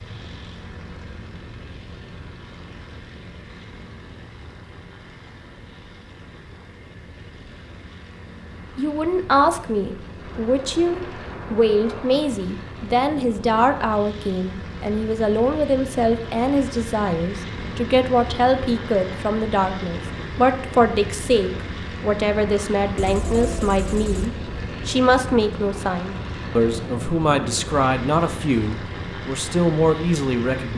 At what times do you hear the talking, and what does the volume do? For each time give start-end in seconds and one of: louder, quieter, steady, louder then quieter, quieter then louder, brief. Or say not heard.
8.8-30.7 steady.